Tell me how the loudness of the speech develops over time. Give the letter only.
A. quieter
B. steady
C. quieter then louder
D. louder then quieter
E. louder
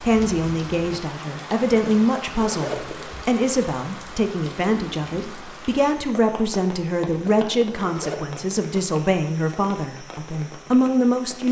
B.